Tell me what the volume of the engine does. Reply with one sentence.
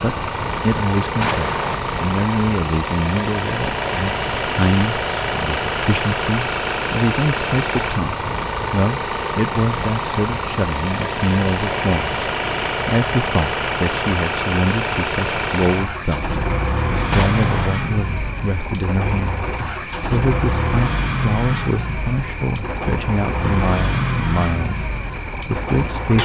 The volume of the engine stays about the same.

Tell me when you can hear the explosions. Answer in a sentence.
The explosions can be heard from 1.2 to 1.8 s and from 17.1 to 17.7 s.